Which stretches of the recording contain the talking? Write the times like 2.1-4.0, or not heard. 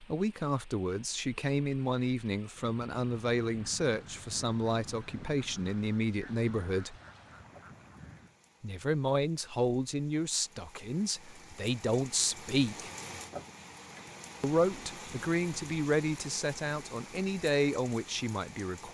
0.0-7.0, 8.6-12.9, 14.4-18.8.